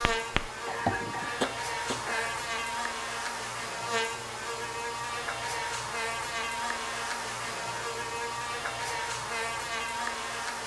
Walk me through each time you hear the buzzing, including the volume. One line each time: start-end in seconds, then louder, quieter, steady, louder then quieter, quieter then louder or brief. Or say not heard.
0.0-10.6 steady.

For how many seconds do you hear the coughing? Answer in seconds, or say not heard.
2 s.